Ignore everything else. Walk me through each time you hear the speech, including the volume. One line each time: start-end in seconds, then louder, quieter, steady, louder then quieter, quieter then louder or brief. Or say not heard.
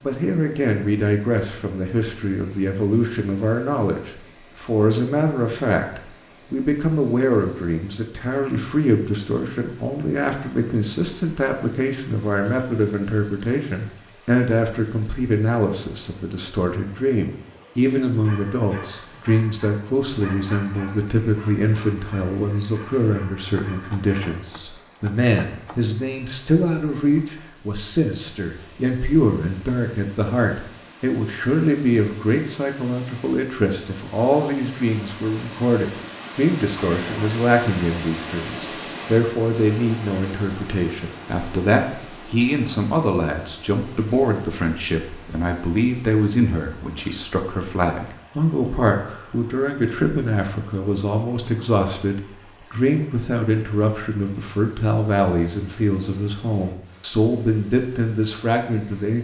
0.0-59.2 steady.